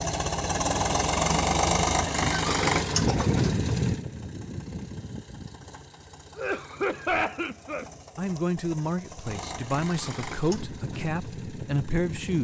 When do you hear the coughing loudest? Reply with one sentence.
The volume of the coughing peaks at 7 seconds.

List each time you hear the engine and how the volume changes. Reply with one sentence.
You can hear the engine from 0.0 to 12.3 s, getting quieter then louder.